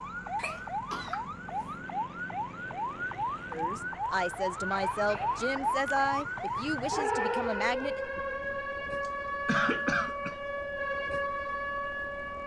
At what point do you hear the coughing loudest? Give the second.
10 s.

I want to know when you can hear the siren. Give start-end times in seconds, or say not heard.
0.0-12.4.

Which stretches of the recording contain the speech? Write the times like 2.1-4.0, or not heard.
3.5-8.0.